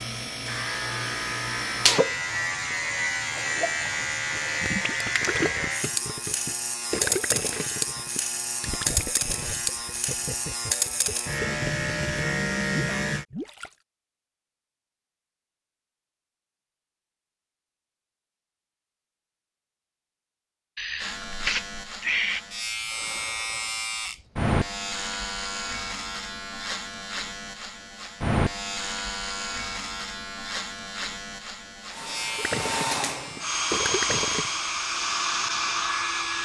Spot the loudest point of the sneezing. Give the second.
22 s.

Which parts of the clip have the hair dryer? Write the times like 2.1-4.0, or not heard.
31.9-36.3.